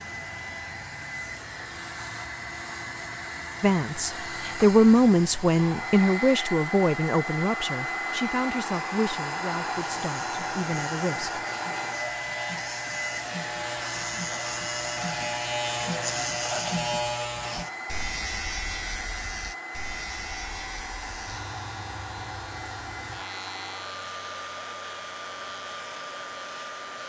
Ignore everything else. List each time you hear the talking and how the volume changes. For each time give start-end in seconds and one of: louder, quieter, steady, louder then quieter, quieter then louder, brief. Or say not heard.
3.6-11.3 quieter.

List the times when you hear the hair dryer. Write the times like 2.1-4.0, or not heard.
0.0-27.0.